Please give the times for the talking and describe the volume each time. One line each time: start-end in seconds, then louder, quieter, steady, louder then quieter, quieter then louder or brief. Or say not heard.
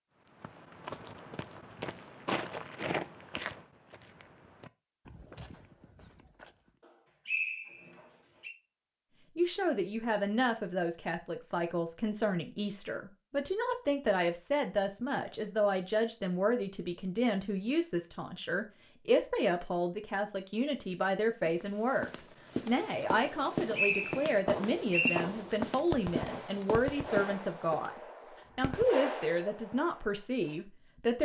9.3-27.9 steady
28.6-31.2 brief.